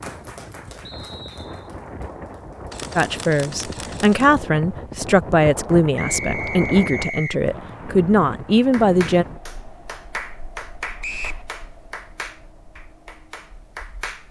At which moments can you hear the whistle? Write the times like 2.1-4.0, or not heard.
0.8-1.7, 6.0-7.3, 11.0-11.4.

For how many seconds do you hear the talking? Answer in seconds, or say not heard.
6 s.